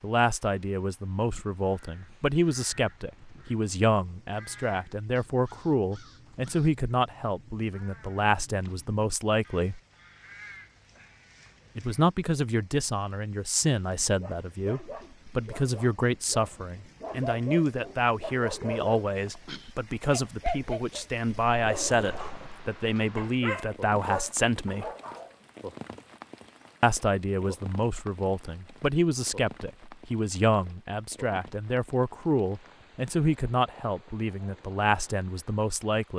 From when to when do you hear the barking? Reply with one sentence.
You can hear the barking from 13.9 to 25.3 s.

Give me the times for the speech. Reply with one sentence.
The speech can be heard from 0.0 to 9.8 s, from 11.8 to 24.9 s and from 26.8 to 36.1 s.